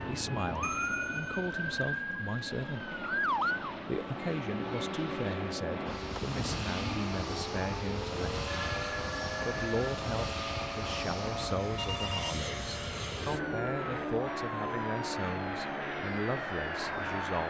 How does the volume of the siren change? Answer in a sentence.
The loudness of the siren goes down.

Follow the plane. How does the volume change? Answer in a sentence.
The volume of the plane goes up.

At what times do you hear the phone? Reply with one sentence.
You can hear the phone from 0.6 to 1.4 s, from 8.4 to 10.0 s and from 11.8 to 12.4 s.